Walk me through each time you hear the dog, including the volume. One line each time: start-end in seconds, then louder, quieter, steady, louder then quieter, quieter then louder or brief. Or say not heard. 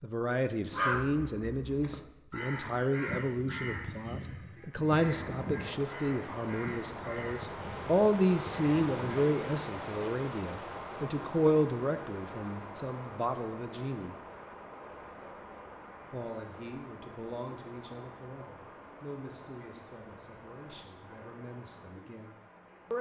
not heard.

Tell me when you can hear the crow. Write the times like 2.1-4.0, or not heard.
0.7-9.2.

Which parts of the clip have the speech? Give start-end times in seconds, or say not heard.
0.0-14.2, 16.1-22.9.